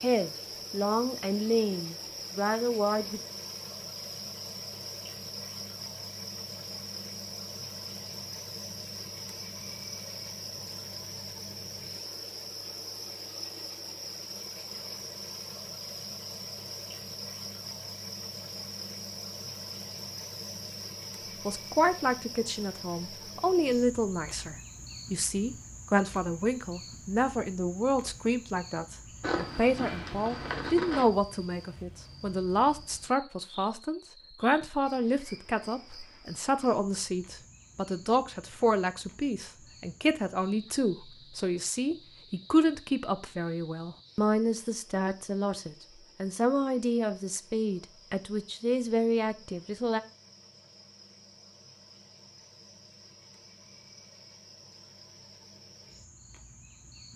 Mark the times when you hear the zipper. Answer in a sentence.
You can hear the zipper from 29.2 to 31.1 s.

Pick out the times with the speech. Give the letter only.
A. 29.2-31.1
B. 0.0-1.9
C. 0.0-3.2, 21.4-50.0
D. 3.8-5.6
C.